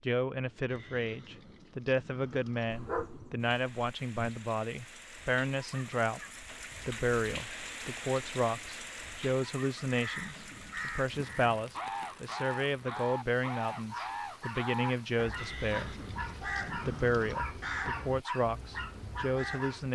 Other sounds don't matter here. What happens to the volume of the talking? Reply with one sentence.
The volume of the talking stays about the same.